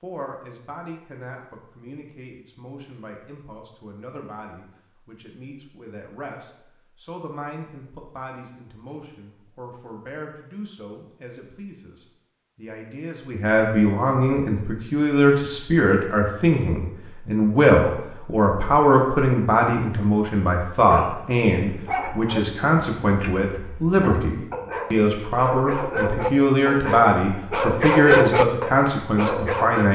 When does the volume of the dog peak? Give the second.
28 s.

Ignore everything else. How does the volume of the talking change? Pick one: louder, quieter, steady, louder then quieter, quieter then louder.
louder.